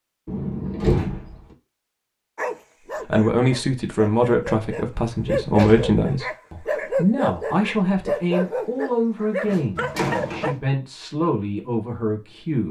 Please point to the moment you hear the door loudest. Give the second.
1 s.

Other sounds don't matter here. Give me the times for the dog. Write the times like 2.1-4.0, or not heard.
2.4-10.6.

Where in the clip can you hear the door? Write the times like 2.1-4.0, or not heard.
0.2-1.4, 5.0-6.0, 9.4-10.6.